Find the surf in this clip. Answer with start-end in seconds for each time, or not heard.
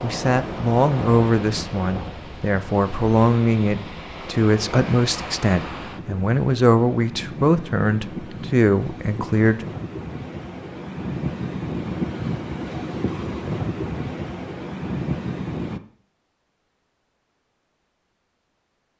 0.0-15.8.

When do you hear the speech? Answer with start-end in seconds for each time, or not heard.
0.0-9.8.